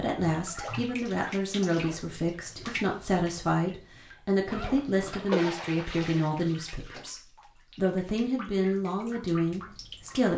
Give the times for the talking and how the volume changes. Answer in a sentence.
You can hear the talking from 0.0 to 10.3 s, at a steady volume.